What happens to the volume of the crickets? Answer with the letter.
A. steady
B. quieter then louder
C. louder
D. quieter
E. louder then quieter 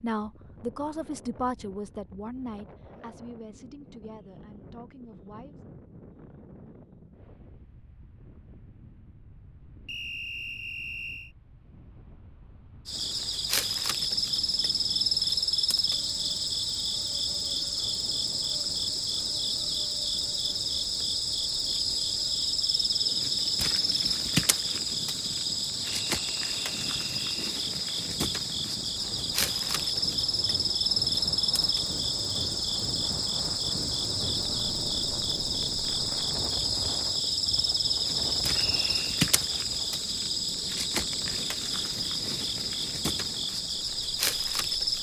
A.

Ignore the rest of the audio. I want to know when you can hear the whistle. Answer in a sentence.
You can hear the whistle from 9.8 to 11.3 s, from 26.1 to 27.6 s and from 38.5 to 39.2 s.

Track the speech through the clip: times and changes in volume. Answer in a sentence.
You can hear the speech from 0.0 to 5.7 s, getting quieter.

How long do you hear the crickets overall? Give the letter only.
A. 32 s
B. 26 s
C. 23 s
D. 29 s
A.